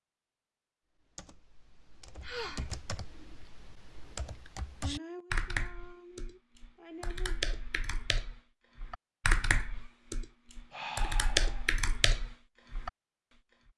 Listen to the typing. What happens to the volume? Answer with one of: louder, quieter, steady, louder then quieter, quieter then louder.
louder.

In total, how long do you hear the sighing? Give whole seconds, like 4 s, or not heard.
4 s.